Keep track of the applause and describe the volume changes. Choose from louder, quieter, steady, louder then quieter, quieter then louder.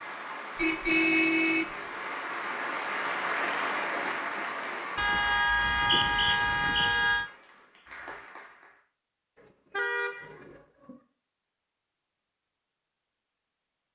louder then quieter.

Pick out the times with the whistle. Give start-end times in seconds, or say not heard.
5.5-6.9.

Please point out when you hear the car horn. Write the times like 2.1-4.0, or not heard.
0.6-1.6, 5.0-7.2, 9.3-10.9.